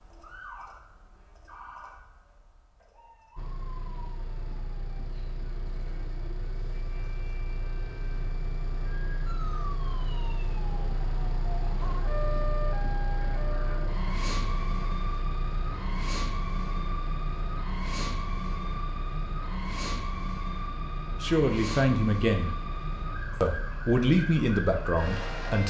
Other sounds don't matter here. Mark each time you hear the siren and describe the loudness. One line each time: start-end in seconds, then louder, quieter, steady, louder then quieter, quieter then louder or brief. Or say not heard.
0.0-25.6 louder.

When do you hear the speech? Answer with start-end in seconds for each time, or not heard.
21.1-22.5, 23.4-25.6.